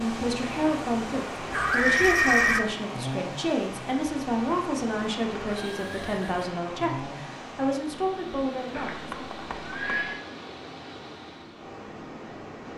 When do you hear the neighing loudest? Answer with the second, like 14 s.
2 s.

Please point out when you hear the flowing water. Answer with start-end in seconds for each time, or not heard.
0.0-12.7.